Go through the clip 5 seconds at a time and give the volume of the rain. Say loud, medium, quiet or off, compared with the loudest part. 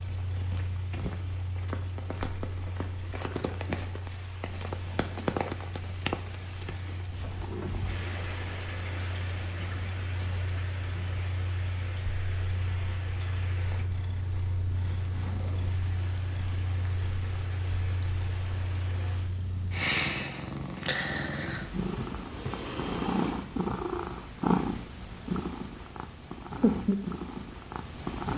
loud, loud, medium, medium, off, off.